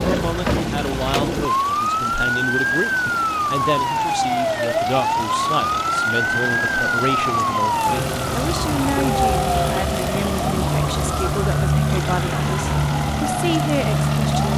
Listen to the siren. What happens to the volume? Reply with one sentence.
The loudness of the siren stays about the same.